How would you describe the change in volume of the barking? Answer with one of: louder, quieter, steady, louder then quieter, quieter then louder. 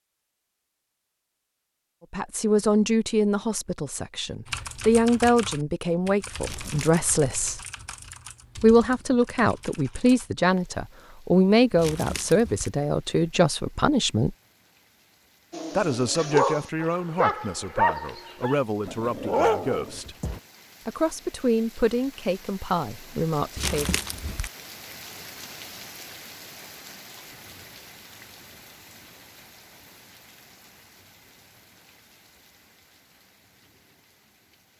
quieter then louder.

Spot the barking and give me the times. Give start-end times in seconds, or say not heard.
15.5-20.4.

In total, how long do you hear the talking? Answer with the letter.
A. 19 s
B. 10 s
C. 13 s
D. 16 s
A.